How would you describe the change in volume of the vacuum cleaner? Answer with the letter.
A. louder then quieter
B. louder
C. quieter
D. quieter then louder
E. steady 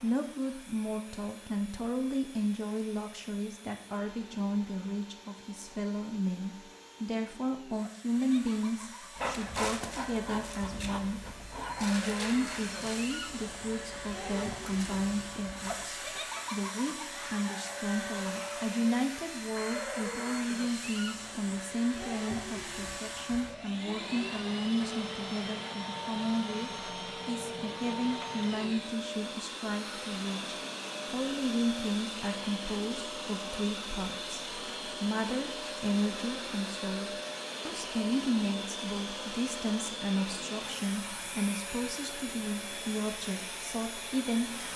B.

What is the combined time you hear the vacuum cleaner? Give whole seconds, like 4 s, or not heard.
45 s.